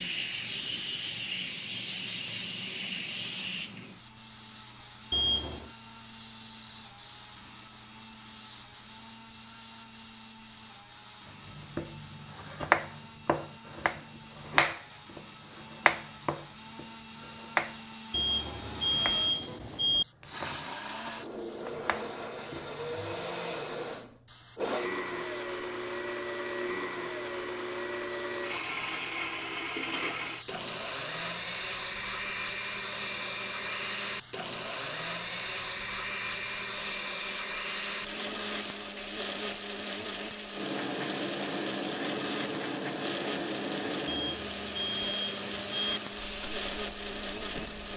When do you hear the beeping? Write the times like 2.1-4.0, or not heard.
5.1-5.7, 18.1-20.1, 44.0-46.0.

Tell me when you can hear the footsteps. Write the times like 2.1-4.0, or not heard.
not heard.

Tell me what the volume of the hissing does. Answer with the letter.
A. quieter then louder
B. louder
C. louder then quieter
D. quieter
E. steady
A.